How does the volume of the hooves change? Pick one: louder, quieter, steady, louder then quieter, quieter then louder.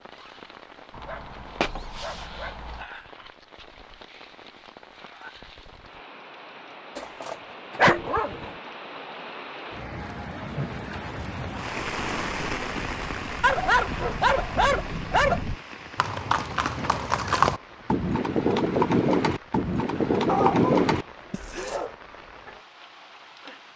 louder.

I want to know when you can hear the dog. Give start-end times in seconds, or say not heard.
0.9-2.9, 7.0-8.6, 13.4-15.4, 20.2-21.9.